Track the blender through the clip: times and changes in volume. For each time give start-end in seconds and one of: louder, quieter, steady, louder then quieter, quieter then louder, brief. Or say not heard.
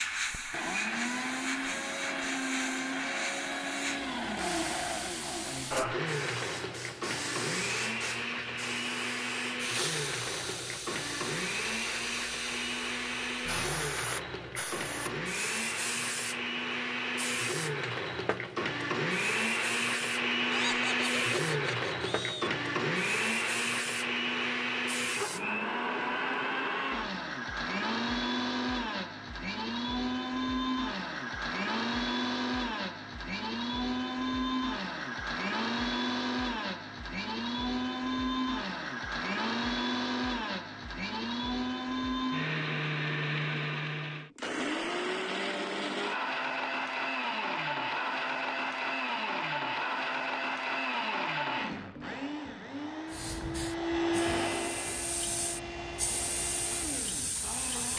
0.0-57.9 steady.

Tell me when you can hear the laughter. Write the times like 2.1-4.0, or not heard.
20.5-22.5.